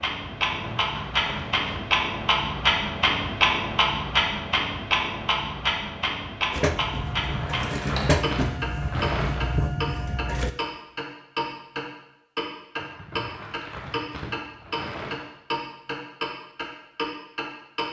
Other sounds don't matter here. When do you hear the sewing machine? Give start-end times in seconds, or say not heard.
6.5-10.5.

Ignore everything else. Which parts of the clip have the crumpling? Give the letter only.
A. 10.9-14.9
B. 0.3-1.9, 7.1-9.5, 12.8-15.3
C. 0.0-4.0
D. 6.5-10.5
B.